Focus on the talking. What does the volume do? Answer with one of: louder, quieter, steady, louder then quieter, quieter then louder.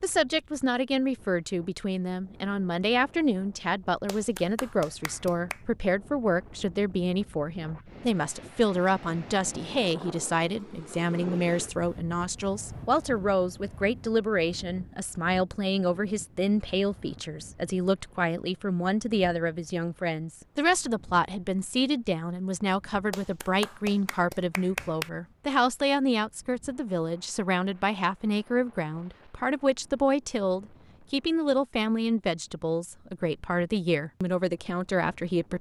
steady.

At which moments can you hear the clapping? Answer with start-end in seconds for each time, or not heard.
4.0-5.6, 23.1-25.1.